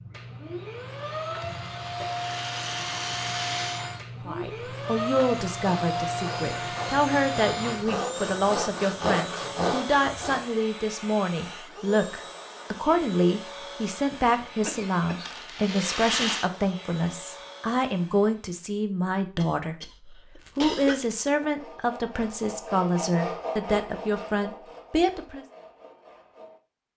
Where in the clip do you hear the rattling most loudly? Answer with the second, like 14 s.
16 s.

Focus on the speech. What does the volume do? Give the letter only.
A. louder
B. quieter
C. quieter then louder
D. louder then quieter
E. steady
E.